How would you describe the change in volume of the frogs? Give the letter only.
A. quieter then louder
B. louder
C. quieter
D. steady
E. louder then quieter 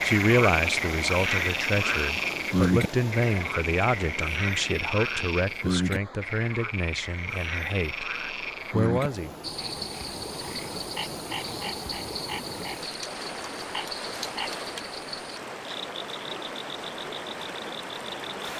C.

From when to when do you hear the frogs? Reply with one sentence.
The frogs can be heard from 0.0 to 18.3 s.